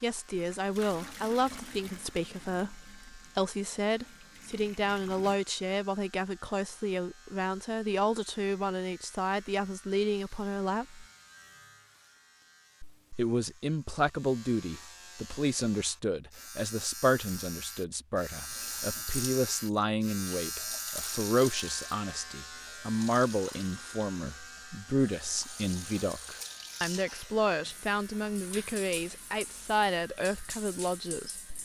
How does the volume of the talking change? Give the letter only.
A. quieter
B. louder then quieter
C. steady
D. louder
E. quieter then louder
C.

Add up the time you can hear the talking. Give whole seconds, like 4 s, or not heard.
29 s.